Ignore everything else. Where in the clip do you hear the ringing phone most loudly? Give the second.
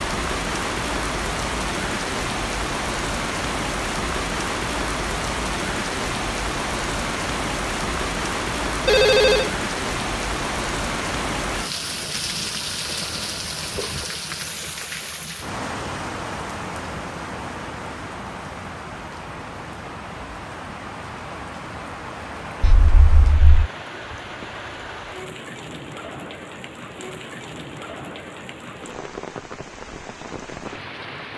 9 s.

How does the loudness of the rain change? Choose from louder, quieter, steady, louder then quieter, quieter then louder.
quieter.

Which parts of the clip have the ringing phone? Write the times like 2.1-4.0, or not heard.
8.8-9.5, 22.6-23.7.